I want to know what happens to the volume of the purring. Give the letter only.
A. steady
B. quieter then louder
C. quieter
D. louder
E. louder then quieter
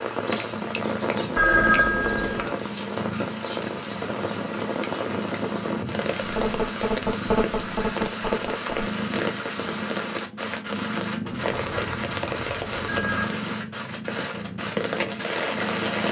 A.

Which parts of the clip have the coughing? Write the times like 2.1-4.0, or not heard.
not heard.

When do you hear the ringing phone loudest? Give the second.
2 s.